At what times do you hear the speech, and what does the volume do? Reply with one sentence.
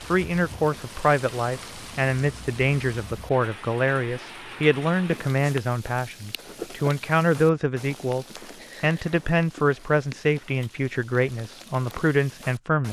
The speech can be heard from 0.1 to 12.8 s, at a steady volume.